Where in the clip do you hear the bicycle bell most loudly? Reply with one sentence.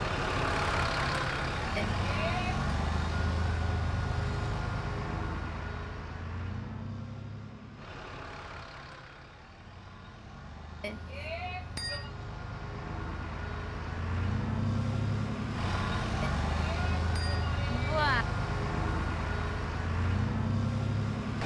The loudest moment of the bicycle bell is at 18 seconds.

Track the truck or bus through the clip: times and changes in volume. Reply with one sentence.
You can hear the truck or bus from 0.0 to 21.4 s, getting quieter then louder.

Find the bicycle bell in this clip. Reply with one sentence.
You can hear the bicycle bell from 1.8 to 2.6 s, from 10.8 to 12.1 s and from 16.2 to 18.2 s.